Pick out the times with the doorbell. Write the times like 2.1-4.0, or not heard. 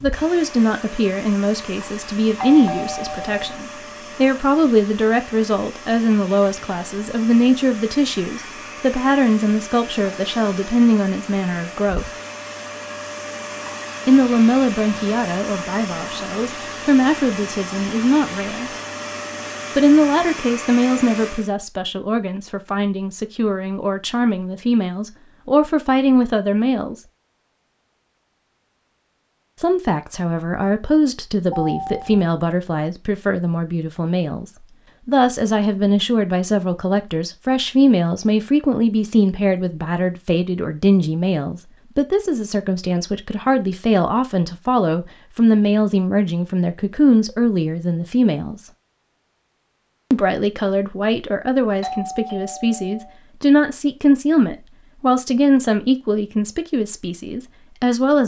2.4-3.6, 31.5-32.3, 51.8-53.1.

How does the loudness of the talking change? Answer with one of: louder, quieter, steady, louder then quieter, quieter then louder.
steady.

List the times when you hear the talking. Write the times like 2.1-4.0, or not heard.
0.0-12.1, 14.1-18.7, 19.8-26.9, 29.6-48.6, 50.1-58.2.